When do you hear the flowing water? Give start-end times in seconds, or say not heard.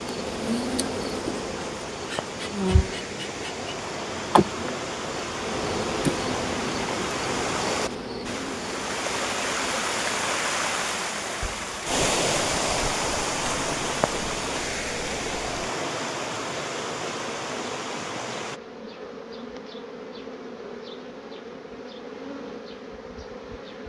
0.0-18.6.